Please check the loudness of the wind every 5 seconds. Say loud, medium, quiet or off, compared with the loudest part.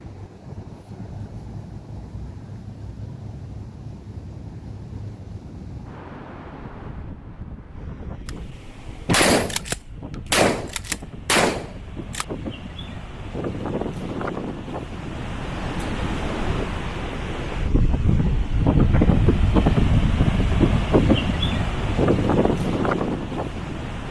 quiet, quiet, medium, loud, loud.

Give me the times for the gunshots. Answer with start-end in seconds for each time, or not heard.
8.2-12.2.